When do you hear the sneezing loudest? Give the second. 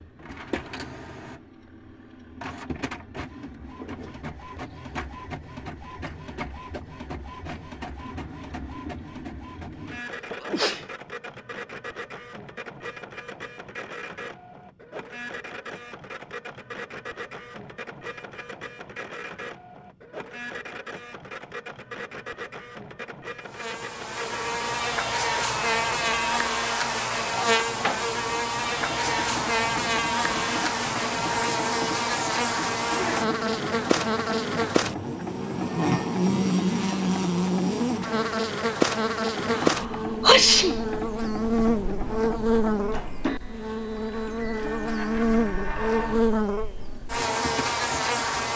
40 s.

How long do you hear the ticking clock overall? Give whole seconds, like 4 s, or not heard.
not heard.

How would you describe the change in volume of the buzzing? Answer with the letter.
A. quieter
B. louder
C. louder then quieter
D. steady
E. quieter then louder
D.